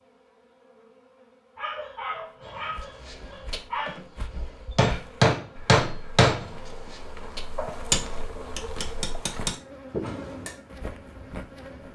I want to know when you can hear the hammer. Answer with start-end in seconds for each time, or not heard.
3.5-4.0, 4.8-6.5, 7.3-10.5.